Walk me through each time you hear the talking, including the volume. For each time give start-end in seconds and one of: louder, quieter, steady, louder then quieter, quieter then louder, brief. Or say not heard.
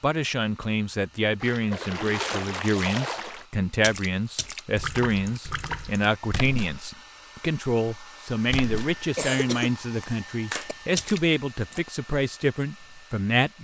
0.0-13.6 steady.